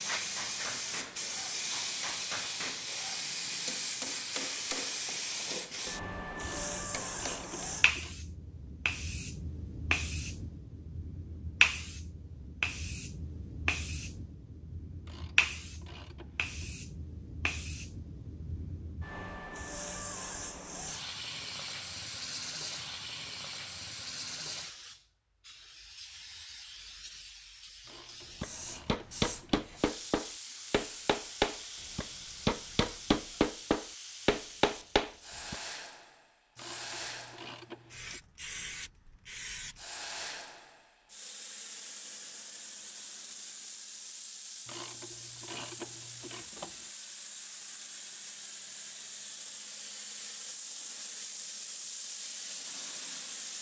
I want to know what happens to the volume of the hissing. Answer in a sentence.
The loudness of the hissing goes down.